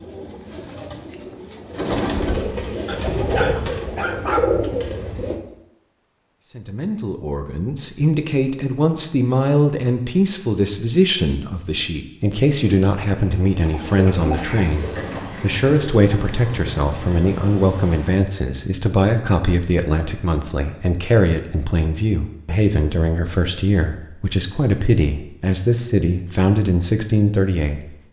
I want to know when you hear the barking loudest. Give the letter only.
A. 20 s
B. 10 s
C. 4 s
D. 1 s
C.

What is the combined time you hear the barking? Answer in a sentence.
You can hear the barking for 2 seconds altogether.